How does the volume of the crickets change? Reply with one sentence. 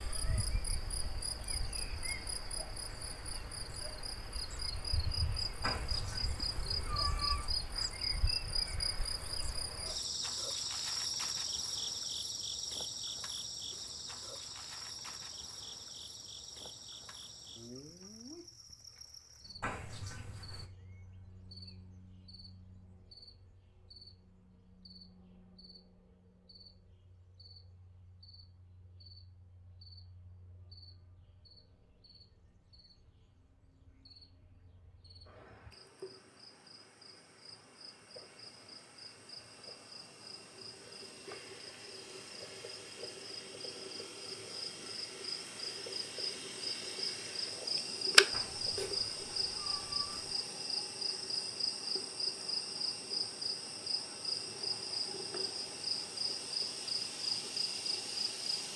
The loudness of the crickets goes down, then up.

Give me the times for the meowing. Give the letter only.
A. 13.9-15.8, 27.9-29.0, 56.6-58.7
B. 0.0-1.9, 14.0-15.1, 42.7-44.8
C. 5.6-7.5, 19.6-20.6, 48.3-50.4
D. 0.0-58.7
C.